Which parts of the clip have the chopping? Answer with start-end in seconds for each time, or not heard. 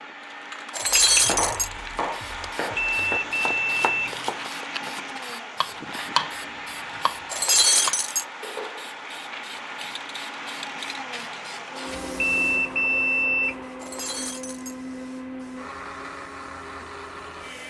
0.8-6.3, 7.0-8.0.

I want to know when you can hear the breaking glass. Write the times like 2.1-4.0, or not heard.
0.7-1.7, 7.3-8.2, 13.8-14.8.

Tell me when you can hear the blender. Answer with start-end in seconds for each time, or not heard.
0.0-17.6.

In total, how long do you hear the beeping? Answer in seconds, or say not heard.
3 s.